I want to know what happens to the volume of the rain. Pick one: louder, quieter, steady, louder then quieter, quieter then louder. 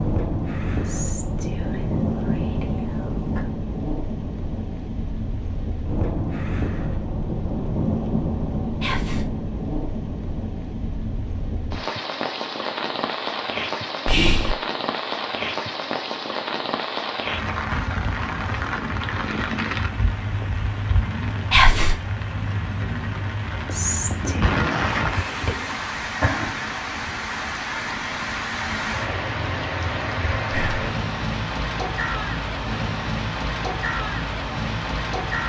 steady.